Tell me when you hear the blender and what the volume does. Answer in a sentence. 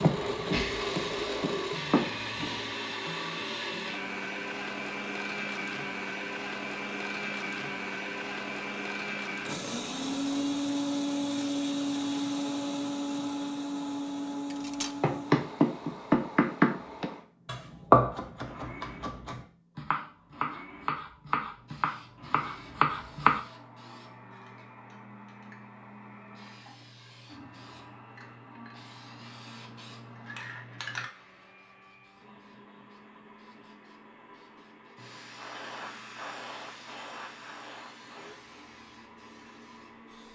The blender can be heard from 0.0 to 40.3 s, getting quieter.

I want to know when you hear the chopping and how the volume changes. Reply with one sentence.
The chopping can be heard briefly from 0.0 to 2.5 s; and from 15.0 to 23.4 s, getting quieter then louder.